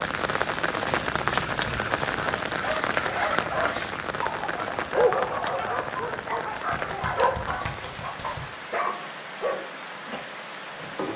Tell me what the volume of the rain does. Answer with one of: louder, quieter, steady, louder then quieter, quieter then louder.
quieter.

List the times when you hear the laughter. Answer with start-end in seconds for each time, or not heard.
not heard.